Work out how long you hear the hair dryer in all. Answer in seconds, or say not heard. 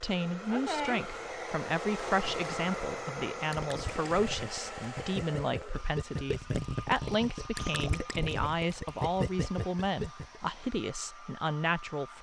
12 s.